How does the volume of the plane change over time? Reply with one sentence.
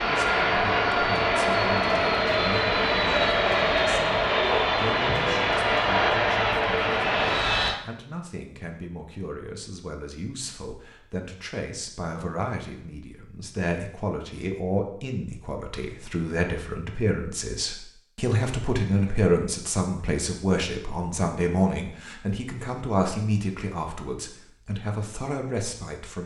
The loudness of the plane stays about the same.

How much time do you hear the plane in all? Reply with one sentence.
You can hear the plane for 8 seconds altogether.